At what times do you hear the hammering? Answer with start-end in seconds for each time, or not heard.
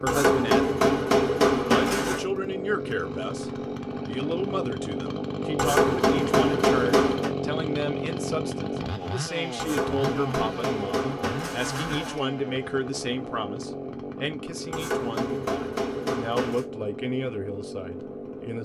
0.1-2.2, 5.5-7.3, 9.6-12.2, 14.7-16.6.